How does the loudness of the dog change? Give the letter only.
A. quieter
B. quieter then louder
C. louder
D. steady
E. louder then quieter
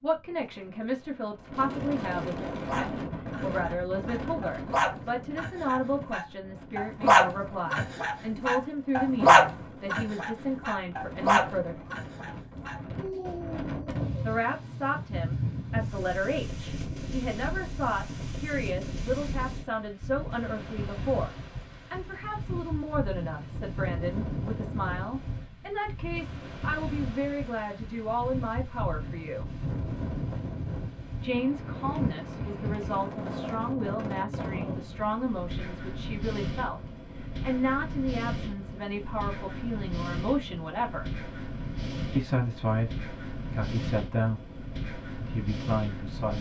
E.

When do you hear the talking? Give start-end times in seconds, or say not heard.
0.0-11.8, 14.2-21.3, 21.9-29.4, 31.1-41.1, 42.1-46.3.